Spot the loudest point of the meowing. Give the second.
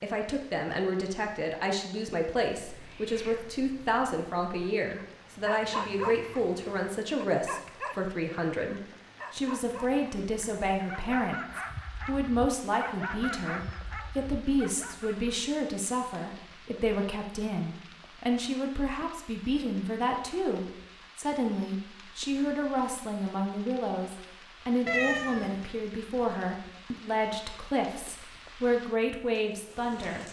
25 s.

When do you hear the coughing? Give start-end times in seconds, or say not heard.
not heard.